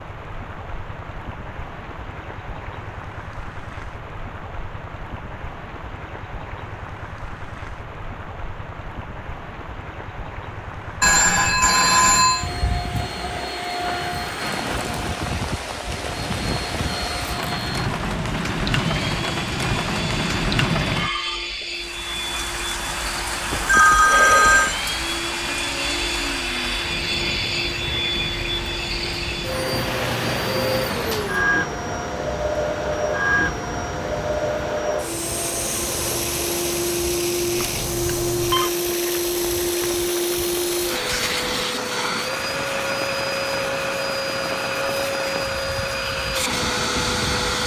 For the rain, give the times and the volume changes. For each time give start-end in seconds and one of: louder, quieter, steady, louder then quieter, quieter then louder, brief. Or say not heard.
0.0-47.6 louder then quieter.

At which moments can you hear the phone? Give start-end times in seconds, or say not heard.
11.0-12.5, 23.5-24.8, 37.5-38.7.